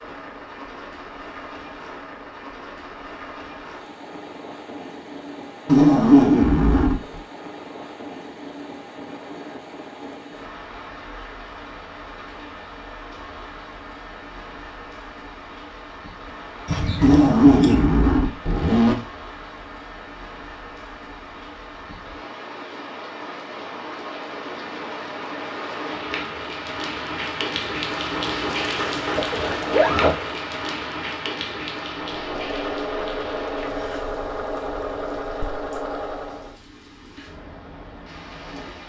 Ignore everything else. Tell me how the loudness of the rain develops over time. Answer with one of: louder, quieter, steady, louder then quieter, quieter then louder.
louder then quieter.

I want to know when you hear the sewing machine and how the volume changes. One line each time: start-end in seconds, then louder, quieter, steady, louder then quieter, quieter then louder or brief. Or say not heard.
32.0-36.5 steady.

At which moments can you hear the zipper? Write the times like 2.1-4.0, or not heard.
5.7-7.2, 17.0-18.9, 29.1-30.1.